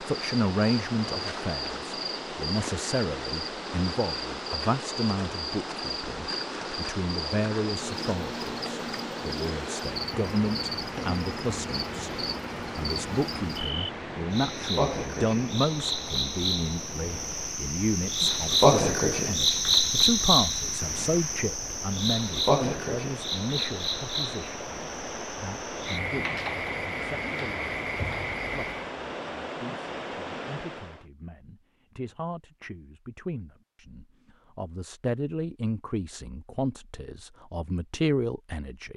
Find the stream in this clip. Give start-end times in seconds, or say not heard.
0.0-31.1.